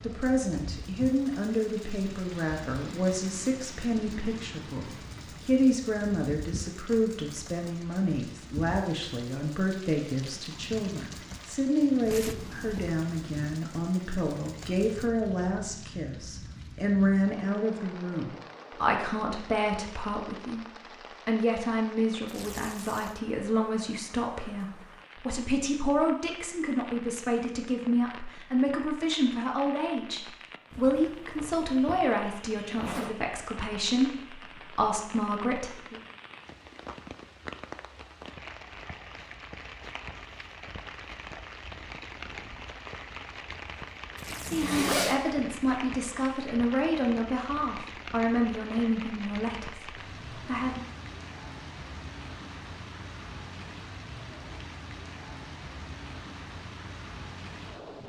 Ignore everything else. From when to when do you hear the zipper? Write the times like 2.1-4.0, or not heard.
12.1-12.8, 30.7-33.1, 44.5-45.2.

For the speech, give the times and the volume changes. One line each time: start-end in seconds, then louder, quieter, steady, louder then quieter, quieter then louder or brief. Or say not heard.
0.0-36.0 steady
44.4-50.9 quieter.